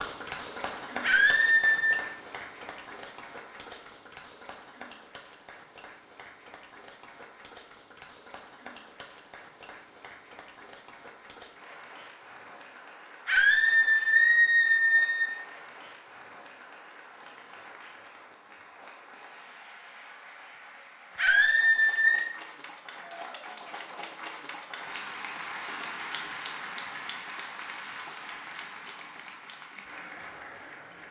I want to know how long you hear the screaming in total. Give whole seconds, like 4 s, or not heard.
4 s.